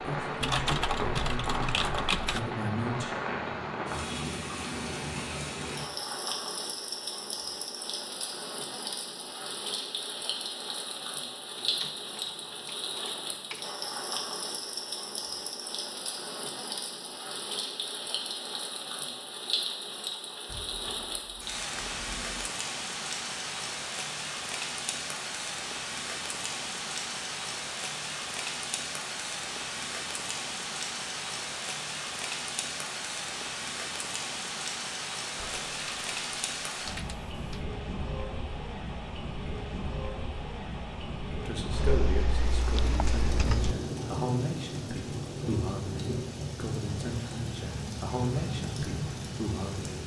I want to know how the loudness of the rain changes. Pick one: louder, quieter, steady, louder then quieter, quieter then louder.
steady.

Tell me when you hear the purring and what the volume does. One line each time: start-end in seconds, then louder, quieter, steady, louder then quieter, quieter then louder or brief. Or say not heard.
not heard.